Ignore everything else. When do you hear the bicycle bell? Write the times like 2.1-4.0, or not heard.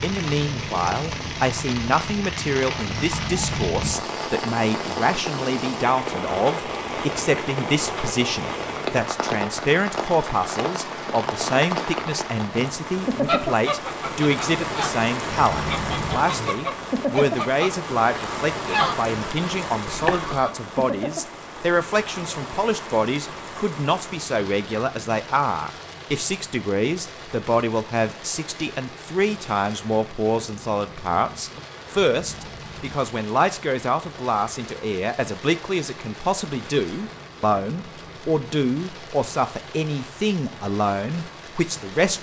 2.9-3.9, 15.2-16.2, 32.1-33.0.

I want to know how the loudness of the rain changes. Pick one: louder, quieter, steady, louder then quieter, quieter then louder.
quieter.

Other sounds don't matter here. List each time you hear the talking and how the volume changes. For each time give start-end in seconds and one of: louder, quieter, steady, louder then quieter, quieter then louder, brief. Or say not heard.
0.0-42.1 steady.